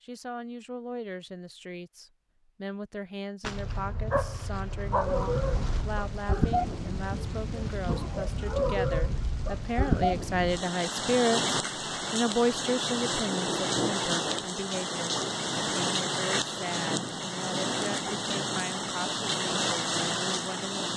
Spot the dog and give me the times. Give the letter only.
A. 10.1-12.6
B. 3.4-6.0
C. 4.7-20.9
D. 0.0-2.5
B.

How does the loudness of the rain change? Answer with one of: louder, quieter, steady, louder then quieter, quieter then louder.
steady.